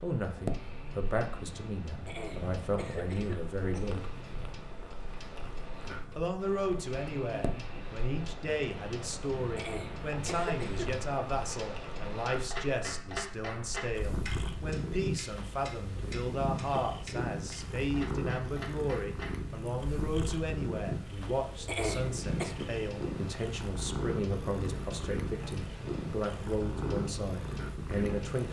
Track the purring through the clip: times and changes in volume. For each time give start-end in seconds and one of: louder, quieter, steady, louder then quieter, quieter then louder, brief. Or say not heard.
0.2-28.4 louder.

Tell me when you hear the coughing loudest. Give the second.
22 s.